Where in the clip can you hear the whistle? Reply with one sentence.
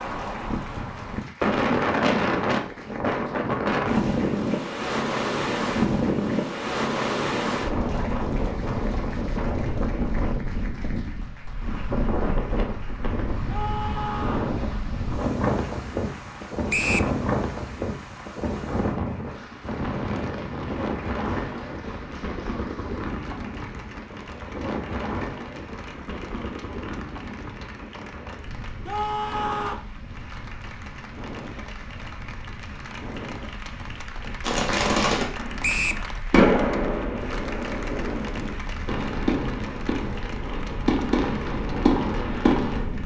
You can hear the whistle from 16.7 to 17.1 s and from 35.6 to 36.0 s.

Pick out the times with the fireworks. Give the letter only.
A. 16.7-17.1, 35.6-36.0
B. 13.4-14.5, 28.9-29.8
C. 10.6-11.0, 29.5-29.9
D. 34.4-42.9
D.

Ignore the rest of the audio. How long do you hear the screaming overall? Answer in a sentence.
You can hear the screaming for 2 seconds altogether.